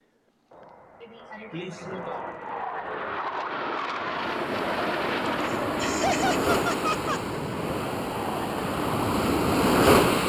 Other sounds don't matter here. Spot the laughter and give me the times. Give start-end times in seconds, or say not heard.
1.0-2.2, 5.2-7.2.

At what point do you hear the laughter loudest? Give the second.
6 s.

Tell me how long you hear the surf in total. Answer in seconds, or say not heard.
6 s.